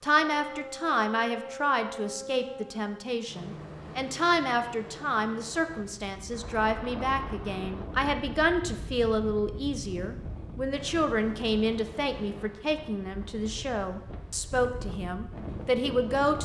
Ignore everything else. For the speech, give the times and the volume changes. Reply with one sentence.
The speech can be heard from 0.0 to 16.3 s, at a steady volume.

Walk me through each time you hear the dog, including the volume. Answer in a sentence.
The dog can't be heard in this clip.